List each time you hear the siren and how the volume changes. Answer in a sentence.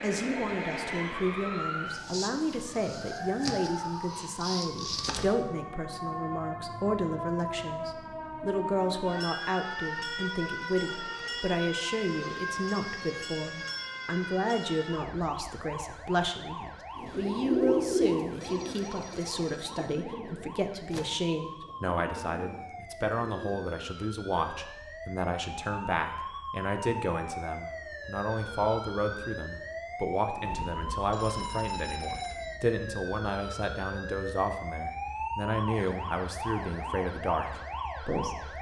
The siren can be heard from 0.0 to 38.5 s, getting quieter then louder.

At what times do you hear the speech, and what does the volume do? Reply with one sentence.
You can hear the speech from 0.0 to 38.5 s, at a steady volume.